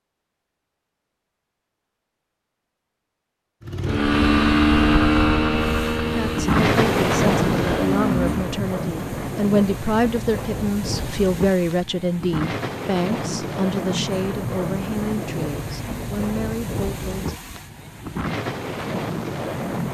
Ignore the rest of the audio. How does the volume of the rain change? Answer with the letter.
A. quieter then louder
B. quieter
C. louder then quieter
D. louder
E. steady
B.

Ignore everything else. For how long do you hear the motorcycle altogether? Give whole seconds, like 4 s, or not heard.
5 s.